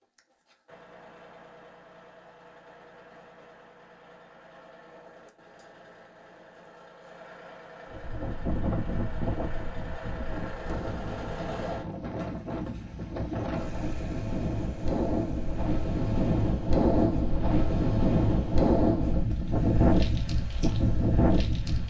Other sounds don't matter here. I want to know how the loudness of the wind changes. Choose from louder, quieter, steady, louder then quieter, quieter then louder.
louder.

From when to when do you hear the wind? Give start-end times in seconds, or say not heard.
7.9-21.8.